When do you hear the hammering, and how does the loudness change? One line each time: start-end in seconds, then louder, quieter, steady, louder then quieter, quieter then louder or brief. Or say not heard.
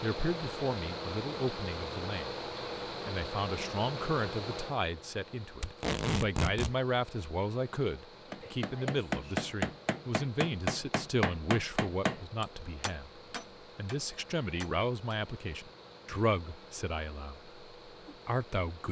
8.3-15.2 quieter.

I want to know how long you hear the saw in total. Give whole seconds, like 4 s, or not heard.
not heard.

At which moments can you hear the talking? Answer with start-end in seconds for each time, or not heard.
0.0-2.3, 3.0-18.8.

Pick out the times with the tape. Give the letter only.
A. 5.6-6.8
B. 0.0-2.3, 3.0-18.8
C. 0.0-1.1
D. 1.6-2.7
A.